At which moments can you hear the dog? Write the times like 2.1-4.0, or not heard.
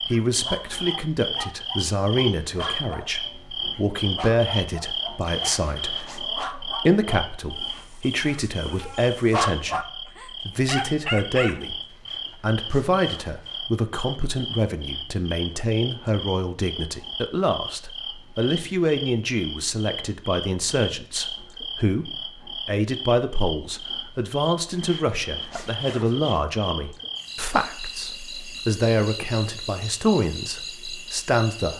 0.1-11.6.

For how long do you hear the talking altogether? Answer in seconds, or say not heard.
30 s.